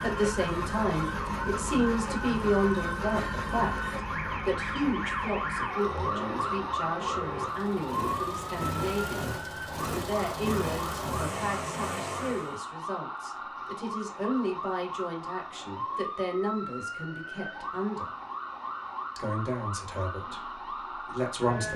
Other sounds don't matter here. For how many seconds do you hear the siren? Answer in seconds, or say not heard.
22 s.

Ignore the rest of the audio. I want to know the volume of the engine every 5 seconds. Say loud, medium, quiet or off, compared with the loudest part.
loud, loud, loud, off, off.